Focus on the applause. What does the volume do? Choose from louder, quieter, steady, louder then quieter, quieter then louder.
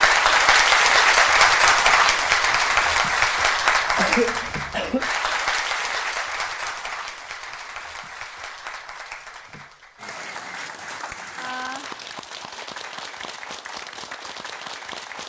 quieter.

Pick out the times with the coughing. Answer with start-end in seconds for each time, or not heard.
4.0-5.1.